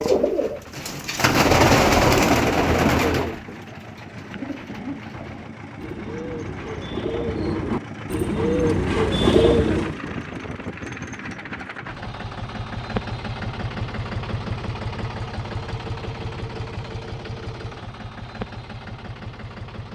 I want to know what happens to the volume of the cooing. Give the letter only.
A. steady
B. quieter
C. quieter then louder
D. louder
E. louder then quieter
C.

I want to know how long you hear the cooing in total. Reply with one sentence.
You can hear the cooing for 10 seconds altogether.